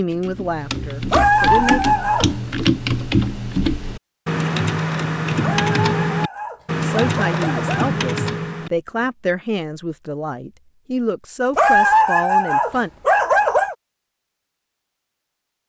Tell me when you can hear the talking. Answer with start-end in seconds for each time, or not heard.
0.0-1.8, 6.8-12.9.